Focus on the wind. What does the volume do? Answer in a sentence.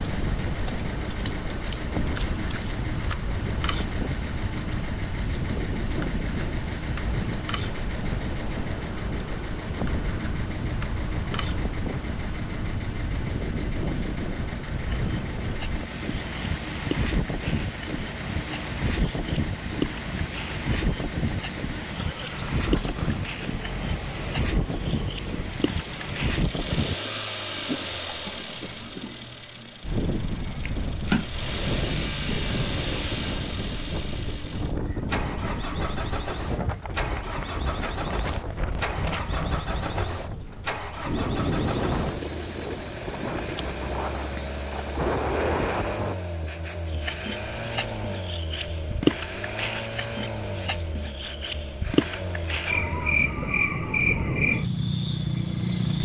The loudness of the wind stays about the same.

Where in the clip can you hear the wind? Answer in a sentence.
You can hear the wind from 0.0 to 46.1 s.